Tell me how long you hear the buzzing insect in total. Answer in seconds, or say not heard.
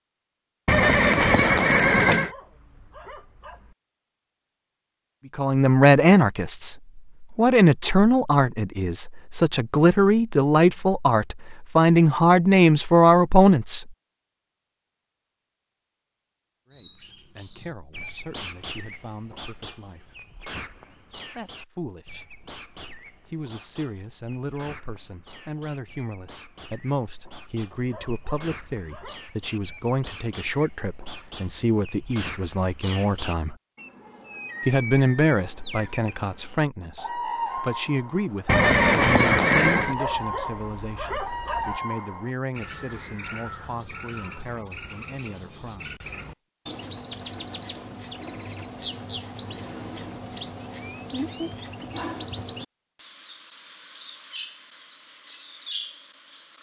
not heard.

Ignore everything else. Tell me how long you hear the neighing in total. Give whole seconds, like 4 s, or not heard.
3 s.